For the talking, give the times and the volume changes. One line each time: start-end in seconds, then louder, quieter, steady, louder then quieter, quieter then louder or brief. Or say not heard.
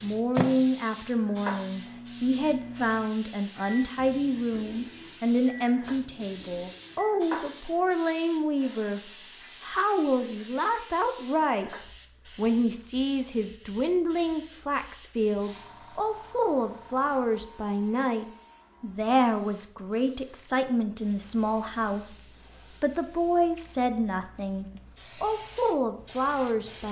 0.0-26.8 steady.